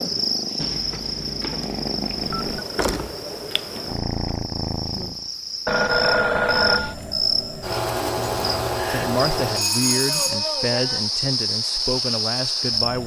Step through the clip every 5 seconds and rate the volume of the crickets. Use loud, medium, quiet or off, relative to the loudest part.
medium, loud, loud.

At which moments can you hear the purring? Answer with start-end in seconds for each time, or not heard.
0.0-5.3.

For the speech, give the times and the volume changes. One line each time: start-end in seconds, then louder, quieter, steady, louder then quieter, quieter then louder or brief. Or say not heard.
8.8-13.0 steady.